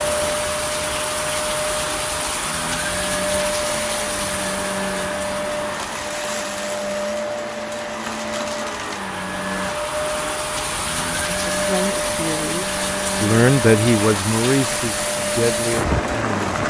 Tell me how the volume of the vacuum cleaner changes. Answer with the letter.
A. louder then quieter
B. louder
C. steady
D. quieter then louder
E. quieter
C.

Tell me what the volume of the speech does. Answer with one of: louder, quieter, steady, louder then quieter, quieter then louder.
louder then quieter.